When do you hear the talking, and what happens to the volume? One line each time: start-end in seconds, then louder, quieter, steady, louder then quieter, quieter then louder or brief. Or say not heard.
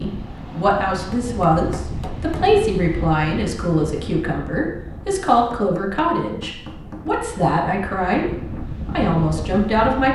0.0-10.1 steady.